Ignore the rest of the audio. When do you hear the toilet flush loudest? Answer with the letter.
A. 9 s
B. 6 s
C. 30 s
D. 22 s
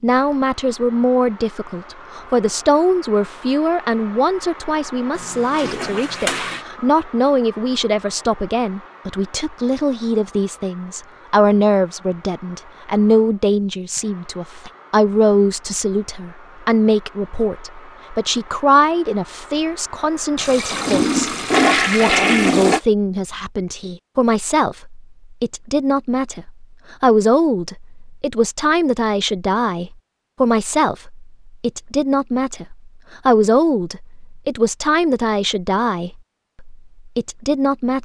D.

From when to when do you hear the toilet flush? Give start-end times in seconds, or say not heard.
5.2-6.6, 20.4-22.8.